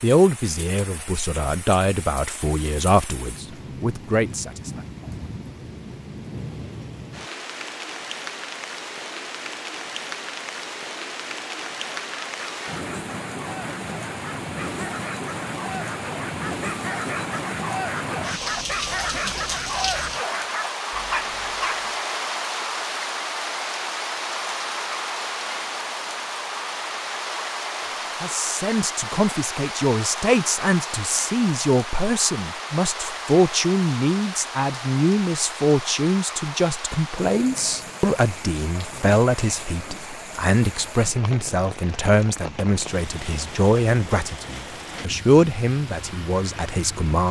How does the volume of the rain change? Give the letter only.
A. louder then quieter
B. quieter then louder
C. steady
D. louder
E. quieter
A.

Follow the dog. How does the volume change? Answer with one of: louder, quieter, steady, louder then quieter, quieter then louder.
louder.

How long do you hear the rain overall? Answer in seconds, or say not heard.
47 s.